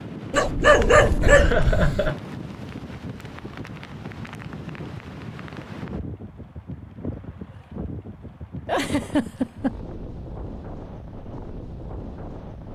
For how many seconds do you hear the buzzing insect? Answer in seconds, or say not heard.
not heard.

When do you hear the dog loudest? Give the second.
1 s.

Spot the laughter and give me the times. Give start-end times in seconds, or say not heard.
1.3-2.1, 8.7-9.8.